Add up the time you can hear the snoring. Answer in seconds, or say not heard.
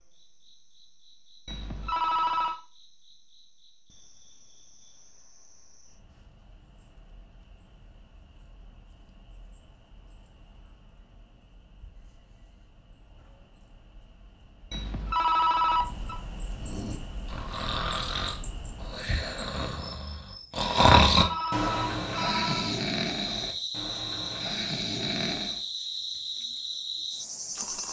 9 s.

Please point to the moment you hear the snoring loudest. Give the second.
21 s.